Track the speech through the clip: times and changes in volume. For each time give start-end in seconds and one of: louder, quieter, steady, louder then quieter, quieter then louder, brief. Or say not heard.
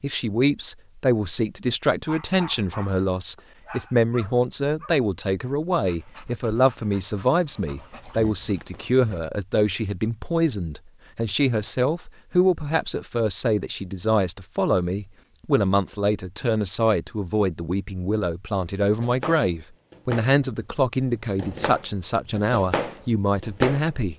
0.0-24.1 steady.